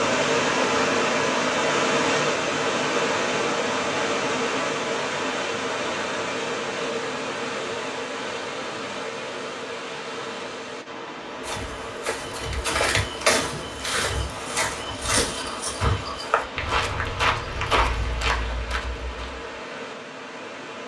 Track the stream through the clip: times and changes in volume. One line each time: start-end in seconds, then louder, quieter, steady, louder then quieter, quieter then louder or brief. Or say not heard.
0.0-20.8 quieter.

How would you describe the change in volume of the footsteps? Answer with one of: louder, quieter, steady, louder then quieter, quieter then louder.
steady.